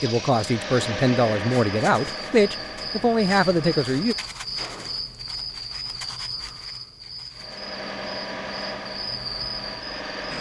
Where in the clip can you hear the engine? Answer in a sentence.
The engine can be heard from 0.0 to 4.4 s and from 7.3 to 10.3 s.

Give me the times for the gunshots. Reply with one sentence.
You can hear the gunshots from 4.5 to 5.8 s.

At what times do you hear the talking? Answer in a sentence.
You can hear the talking from 0.0 to 4.2 s.